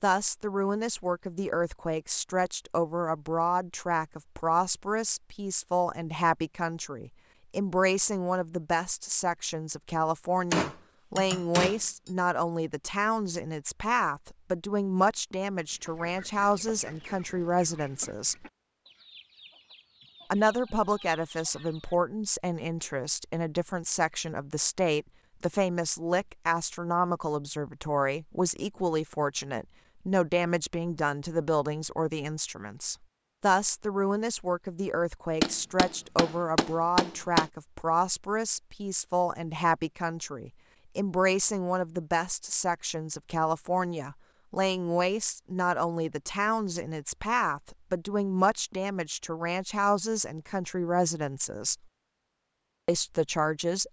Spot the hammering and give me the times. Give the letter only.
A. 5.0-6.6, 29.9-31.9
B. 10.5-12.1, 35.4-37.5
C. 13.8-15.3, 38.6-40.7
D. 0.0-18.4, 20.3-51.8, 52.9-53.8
B.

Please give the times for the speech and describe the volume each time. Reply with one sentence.
The speech can be heard from 0.0 to 18.4 s, at a steady volume; from 20.3 to 51.8 s, at a steady volume; and briefly from 52.9 to 53.8 s.